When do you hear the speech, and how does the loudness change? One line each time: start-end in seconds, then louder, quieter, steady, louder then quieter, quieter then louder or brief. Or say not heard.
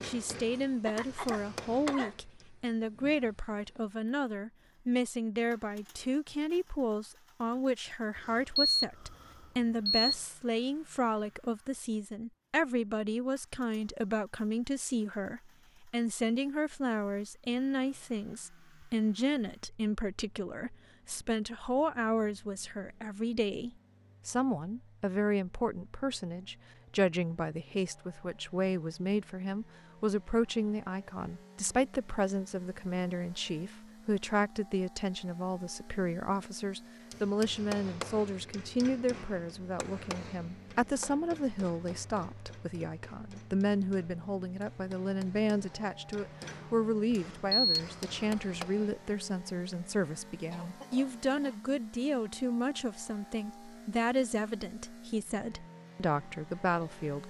0.0-57.2 steady.